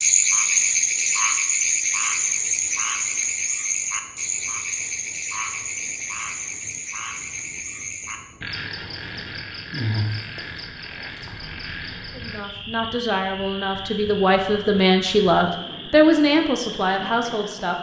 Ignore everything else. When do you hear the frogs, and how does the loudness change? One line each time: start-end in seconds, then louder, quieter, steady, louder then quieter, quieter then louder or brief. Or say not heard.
0.0-17.7 quieter.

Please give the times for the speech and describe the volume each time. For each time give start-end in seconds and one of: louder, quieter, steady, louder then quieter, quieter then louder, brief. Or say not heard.
12.1-17.7 louder then quieter.